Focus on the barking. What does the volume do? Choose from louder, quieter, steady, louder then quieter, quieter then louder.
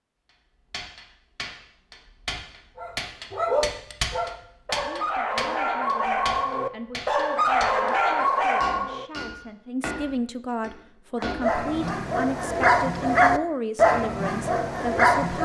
louder.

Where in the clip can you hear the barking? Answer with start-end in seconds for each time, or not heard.
2.8-9.1, 11.2-15.4.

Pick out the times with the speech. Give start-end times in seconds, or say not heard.
4.8-15.4.